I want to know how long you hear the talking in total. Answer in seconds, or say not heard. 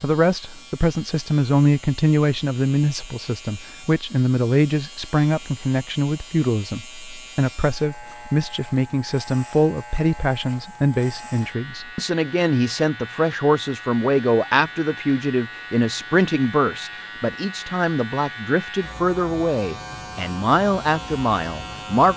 22 s.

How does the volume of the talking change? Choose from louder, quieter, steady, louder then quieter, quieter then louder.
steady.